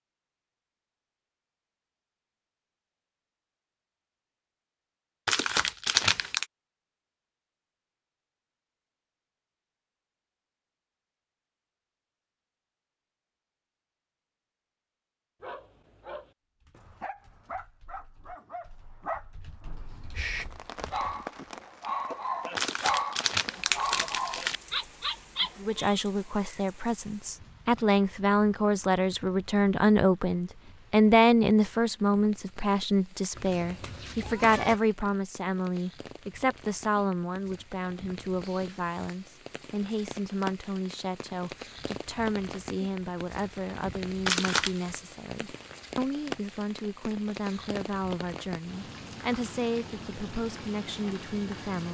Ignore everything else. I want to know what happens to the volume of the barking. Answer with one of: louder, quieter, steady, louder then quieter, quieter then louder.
louder.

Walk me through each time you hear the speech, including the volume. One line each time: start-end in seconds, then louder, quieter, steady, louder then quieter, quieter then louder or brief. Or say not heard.
25.6-51.9 quieter.